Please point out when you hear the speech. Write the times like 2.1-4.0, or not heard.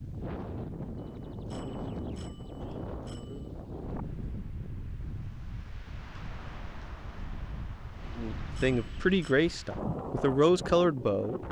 8.2-11.4.